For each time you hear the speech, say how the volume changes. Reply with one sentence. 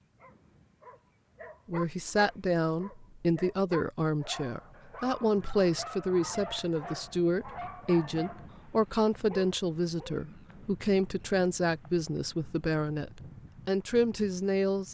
You can hear the speech from 1.6 to 14.8 s, at a steady volume.